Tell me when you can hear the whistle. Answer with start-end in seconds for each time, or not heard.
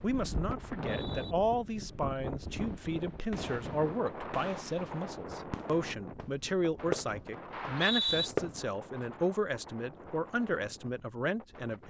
0.6-1.4, 7.5-8.3.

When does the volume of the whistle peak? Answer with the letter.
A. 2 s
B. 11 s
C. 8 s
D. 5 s
C.